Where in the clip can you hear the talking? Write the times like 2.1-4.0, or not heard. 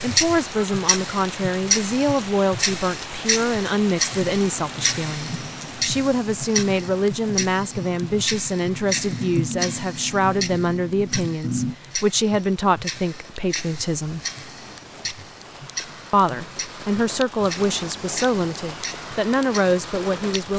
0.0-14.2, 16.1-20.5.